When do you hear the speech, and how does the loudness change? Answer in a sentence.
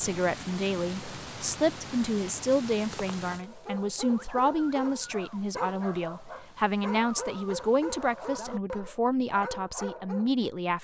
You can hear the speech from 0.0 to 10.8 s, at a steady volume.